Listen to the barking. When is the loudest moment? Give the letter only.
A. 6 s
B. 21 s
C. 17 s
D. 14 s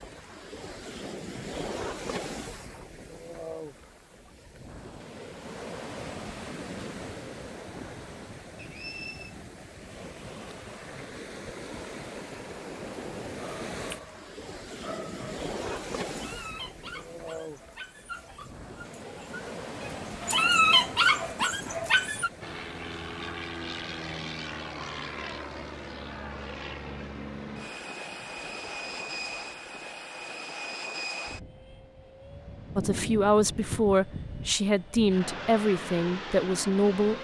B.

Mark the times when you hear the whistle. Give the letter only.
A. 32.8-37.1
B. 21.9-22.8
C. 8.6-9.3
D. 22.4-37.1
C.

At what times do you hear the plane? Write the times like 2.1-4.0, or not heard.
22.4-37.1.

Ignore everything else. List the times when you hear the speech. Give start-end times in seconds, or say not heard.
32.8-37.1.